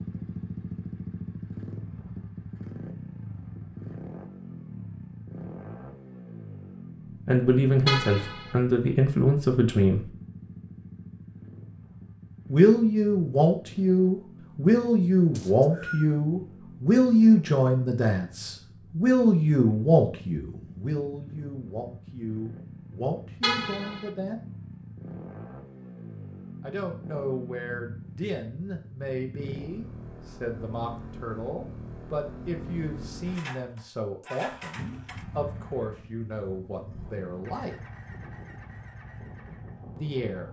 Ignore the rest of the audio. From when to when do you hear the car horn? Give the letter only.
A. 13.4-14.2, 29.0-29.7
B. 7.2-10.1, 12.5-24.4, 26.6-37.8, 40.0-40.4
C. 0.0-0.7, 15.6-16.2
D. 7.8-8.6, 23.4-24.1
D.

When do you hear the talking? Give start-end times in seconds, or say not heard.
7.2-10.1, 12.5-24.4, 26.6-37.8, 40.0-40.4.